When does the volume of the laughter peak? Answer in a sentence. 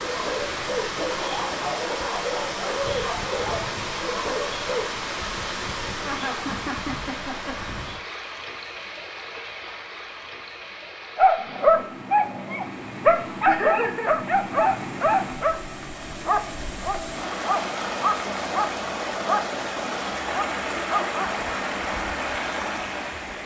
The volume of the laughter peaks at 14 seconds.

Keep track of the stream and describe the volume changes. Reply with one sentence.
The loudness of the stream goes down, then up.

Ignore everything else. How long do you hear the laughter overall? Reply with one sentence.
You can hear the laughter for 2 seconds altogether.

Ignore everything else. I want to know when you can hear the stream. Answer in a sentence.
You can hear the stream from 0.0 to 23.4 s.